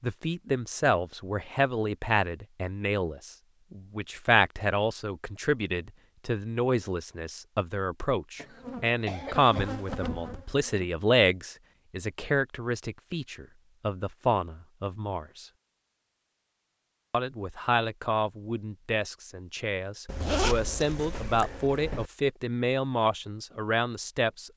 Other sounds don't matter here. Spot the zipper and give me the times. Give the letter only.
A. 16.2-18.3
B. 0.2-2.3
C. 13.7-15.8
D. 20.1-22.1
D.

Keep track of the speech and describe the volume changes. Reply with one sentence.
The loudness of the speech stays about the same.